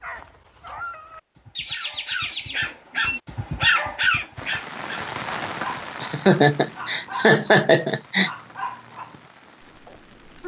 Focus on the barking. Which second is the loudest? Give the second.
4 s.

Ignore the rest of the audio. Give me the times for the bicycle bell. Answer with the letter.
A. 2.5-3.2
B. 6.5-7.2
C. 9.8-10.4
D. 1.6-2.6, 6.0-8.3
A.